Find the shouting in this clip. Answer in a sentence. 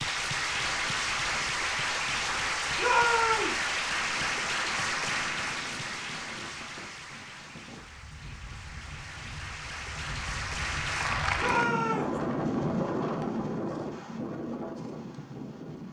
The shouting can be heard from 2.8 to 3.6 s and from 11.3 to 12.2 s.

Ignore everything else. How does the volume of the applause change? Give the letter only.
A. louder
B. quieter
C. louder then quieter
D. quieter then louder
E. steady
D.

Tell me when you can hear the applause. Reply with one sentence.
The applause can be heard from 0.0 to 11.8 s.